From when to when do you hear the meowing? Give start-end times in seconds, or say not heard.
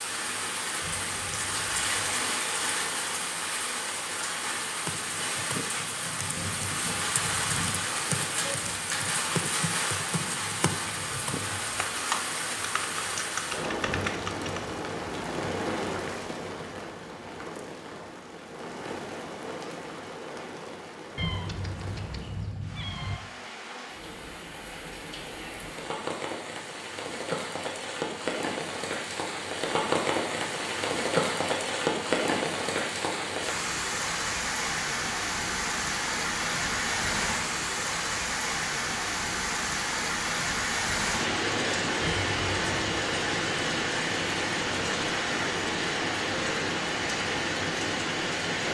0.8-1.8, 21.1-23.2, 42.0-42.8.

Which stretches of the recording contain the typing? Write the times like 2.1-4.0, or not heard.
4.8-14.7.